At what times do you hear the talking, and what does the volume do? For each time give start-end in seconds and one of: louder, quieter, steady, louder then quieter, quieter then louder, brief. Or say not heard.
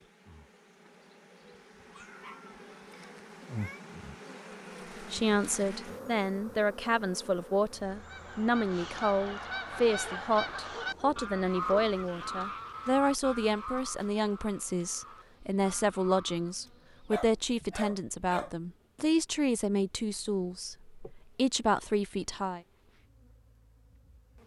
5.1-22.6 steady.